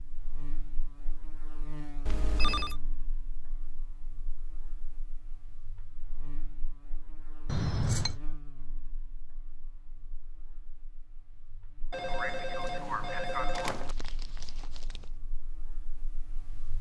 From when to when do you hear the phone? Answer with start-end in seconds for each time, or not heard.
2.0-2.8, 7.5-8.2, 11.9-13.9.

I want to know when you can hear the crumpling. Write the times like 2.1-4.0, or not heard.
13.8-15.2.